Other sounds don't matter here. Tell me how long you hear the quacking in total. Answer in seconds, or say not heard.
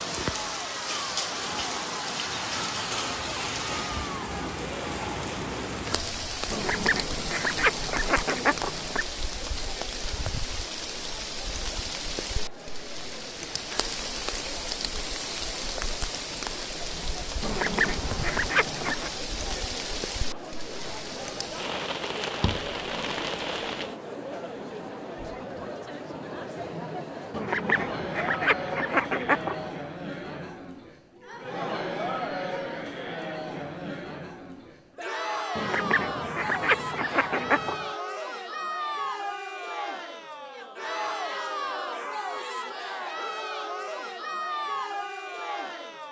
9 s.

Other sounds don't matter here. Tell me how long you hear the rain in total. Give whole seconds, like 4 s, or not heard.
24 s.